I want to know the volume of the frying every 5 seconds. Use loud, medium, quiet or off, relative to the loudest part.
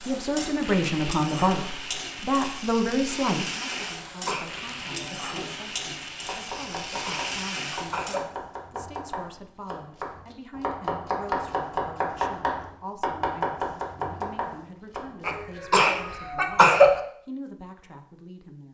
loud, loud, off, off.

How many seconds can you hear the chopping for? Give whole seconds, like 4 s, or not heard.
10 s.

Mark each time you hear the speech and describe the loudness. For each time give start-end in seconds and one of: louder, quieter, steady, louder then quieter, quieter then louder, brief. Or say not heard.
0.0-18.6 quieter.